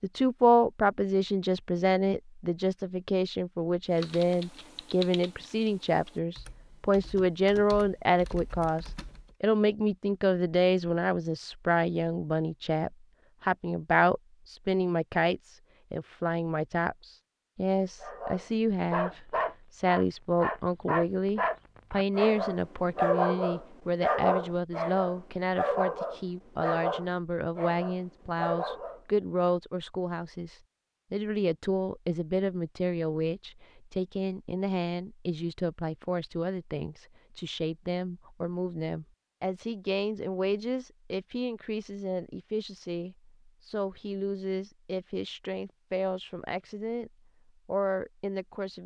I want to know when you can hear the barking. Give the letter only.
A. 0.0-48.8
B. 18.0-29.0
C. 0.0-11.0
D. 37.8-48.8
B.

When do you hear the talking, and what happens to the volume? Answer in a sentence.
You can hear the talking from 0.0 to 48.8 s, getting quieter.